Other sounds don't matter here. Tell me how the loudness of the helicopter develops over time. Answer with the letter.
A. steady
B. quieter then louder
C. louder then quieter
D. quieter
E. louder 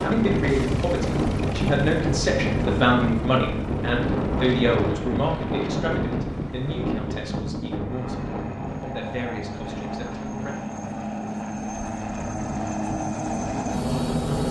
B.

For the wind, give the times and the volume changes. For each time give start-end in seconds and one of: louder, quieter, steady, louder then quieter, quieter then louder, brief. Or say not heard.
0.0-14.2 quieter.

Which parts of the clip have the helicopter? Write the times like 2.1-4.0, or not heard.
0.0-14.4.